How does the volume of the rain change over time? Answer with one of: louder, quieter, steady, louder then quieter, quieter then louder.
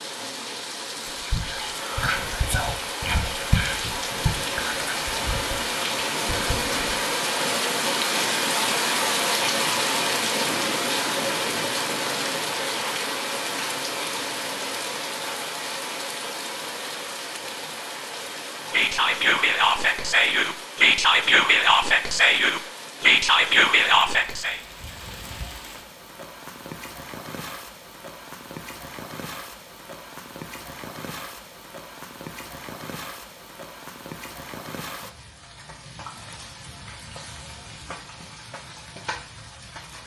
quieter.